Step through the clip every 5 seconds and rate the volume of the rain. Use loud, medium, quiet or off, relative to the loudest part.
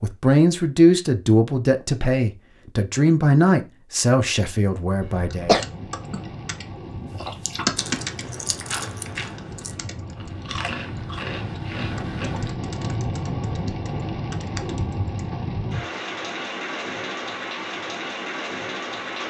off, medium, loud, loud.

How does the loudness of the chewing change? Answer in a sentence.
The volume of the chewing goes down, then up.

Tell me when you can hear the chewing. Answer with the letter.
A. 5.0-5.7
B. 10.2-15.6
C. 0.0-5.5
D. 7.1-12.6
D.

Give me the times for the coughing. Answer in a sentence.
The coughing can be heard from 5.0 to 5.7 s.